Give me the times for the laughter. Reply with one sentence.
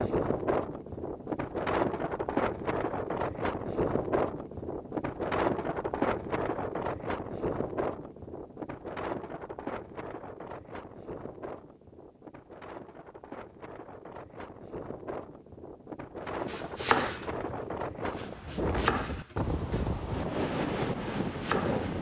The laughter can't be heard in this clip.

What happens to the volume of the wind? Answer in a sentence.
The loudness of the wind goes down, then up.